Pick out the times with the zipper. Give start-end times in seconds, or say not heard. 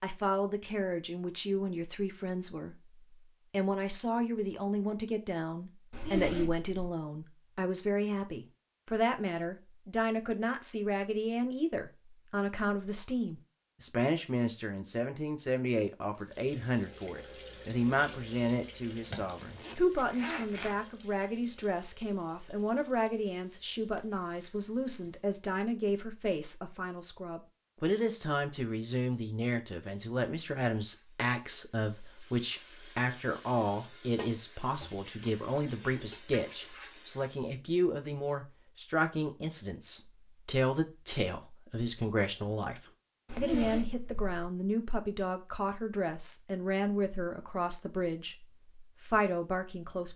5.9-6.9, 19.1-20.8, 43.2-44.5.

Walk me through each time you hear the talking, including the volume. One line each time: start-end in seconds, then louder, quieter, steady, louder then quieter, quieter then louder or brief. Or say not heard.
0.0-2.8 brief
3.5-50.1 steady.